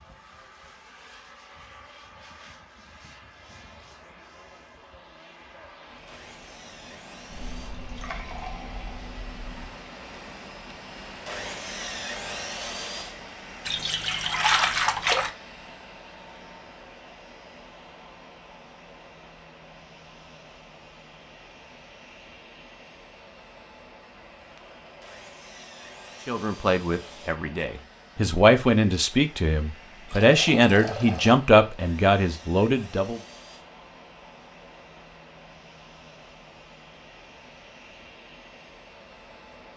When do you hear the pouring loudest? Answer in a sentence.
The loudest moment of the pouring is at 15 seconds.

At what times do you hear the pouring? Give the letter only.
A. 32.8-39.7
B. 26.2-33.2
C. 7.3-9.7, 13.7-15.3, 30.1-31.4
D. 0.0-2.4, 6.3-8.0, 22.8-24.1
C.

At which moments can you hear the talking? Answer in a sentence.
The talking can be heard from 26.2 to 33.2 s.